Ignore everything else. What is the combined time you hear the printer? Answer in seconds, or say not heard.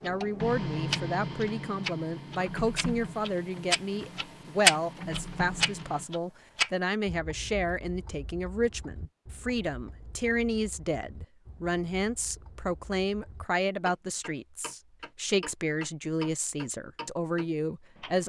6 s.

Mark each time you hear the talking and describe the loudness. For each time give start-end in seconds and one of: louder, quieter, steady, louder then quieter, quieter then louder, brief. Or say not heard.
0.0-18.2 steady.